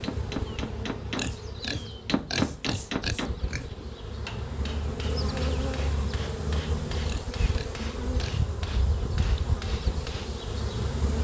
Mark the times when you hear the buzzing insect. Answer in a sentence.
The buzzing insect can be heard from 0.0 to 11.2 s.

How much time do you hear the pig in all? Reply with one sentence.
The pig can be heard for 4 seconds in total.